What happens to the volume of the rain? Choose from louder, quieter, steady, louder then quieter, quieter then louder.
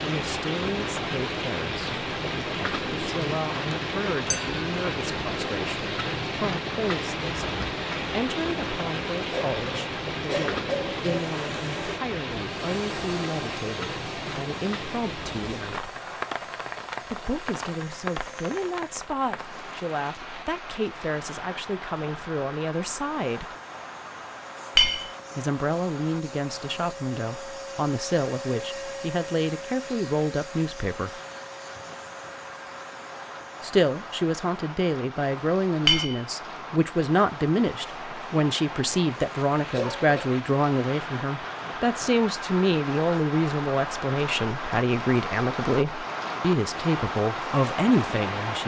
quieter then louder.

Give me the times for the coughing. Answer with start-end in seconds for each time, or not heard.
9.3-11.2, 39.7-40.3.